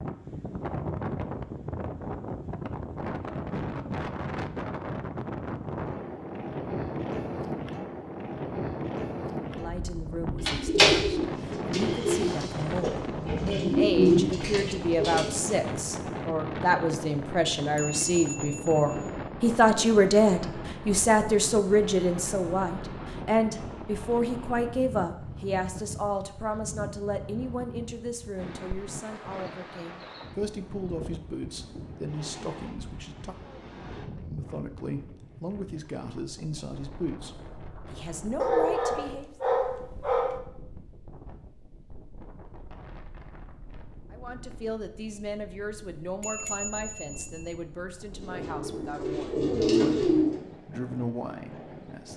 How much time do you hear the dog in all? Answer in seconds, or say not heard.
2 s.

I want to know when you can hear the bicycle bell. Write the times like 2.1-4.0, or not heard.
17.8-19.1, 46.2-47.5.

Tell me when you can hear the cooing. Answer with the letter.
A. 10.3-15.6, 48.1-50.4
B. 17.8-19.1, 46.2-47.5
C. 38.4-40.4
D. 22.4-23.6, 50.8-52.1
A.